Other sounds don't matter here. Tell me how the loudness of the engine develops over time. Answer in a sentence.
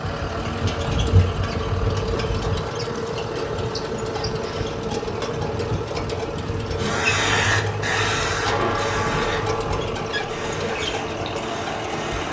The volume of the engine stays about the same.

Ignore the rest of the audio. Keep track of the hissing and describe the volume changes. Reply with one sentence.
The volume of the hissing goes down.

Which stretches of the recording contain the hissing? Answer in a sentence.
The hissing can be heard from 6.6 to 12.2 s.